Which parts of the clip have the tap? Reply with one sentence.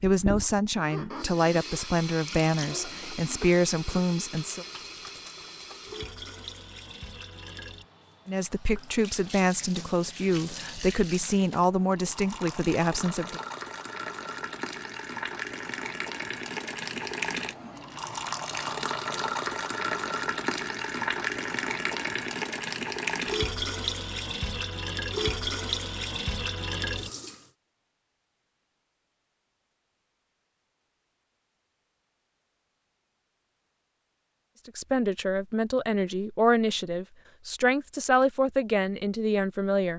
You can hear the tap from 0.1 to 27.5 s.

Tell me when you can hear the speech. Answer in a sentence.
You can hear the speech from 0.0 to 4.7 s, from 8.2 to 13.4 s and from 34.6 to 39.9 s.